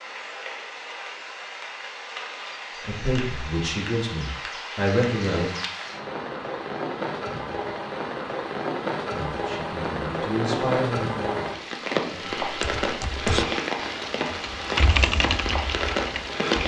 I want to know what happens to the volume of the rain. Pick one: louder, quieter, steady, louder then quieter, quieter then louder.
louder.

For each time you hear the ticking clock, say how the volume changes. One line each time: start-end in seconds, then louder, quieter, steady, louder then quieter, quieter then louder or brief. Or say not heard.
not heard.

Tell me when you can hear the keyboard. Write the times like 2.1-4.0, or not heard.
12.4-16.6.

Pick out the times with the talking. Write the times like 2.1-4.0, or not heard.
2.8-5.5, 9.1-12.3.